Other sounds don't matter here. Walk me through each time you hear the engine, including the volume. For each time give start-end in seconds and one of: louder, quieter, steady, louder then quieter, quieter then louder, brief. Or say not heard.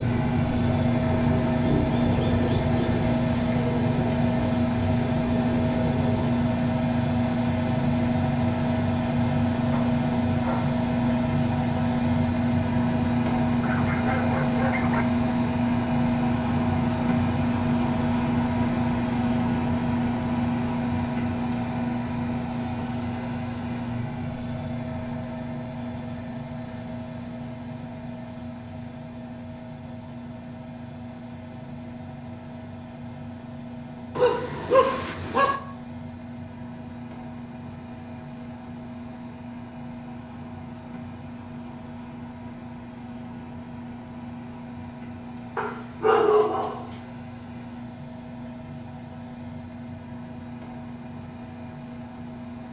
0.0-52.6 quieter.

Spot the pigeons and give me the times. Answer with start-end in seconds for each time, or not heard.
0.0-6.5.